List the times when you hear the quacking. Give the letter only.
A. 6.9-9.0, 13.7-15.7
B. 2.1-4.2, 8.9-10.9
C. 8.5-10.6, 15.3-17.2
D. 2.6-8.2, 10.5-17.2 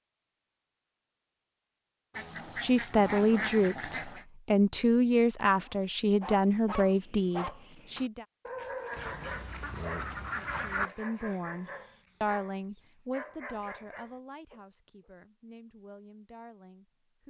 B.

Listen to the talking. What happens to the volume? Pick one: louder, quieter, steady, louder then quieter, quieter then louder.
quieter.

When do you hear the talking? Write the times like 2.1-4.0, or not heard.
2.6-8.2, 10.5-17.2.